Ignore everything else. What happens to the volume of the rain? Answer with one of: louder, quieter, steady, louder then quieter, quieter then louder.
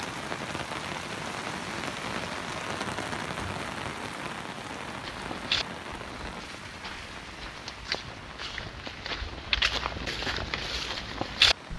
quieter.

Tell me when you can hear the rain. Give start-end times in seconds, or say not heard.
0.0-11.7.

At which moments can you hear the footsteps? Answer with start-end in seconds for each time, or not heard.
5.0-11.7.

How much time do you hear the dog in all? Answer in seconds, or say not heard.
not heard.